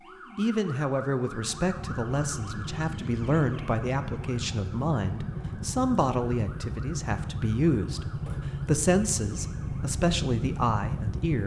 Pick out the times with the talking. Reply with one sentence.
You can hear the talking from 0.3 to 8.1 s and from 8.7 to 11.4 s.